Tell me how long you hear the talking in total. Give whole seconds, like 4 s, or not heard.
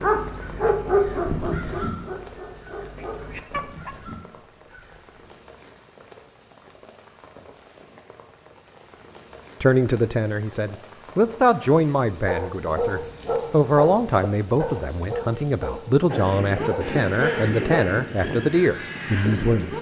10 s.